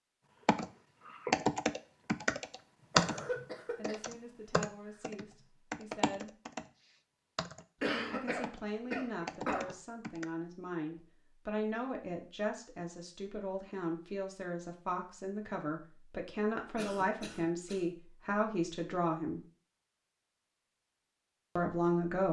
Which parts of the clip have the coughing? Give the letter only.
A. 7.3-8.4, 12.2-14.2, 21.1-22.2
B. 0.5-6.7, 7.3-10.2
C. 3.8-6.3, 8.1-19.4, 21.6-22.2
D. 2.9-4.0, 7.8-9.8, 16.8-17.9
D.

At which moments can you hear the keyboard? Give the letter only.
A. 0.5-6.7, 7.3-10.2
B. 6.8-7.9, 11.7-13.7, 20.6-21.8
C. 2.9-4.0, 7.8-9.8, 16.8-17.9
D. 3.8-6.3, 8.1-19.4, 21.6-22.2
A.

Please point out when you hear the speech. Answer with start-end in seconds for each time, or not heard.
3.8-6.3, 8.1-19.4, 21.6-22.2.